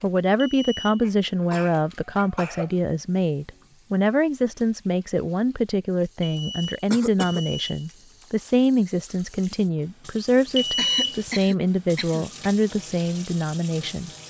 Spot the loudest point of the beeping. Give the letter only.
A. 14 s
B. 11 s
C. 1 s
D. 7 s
B.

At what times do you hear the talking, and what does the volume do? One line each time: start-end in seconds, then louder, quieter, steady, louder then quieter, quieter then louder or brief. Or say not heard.
0.0-14.1 steady.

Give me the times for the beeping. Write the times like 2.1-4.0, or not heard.
0.3-1.1, 6.2-7.7, 10.6-11.2.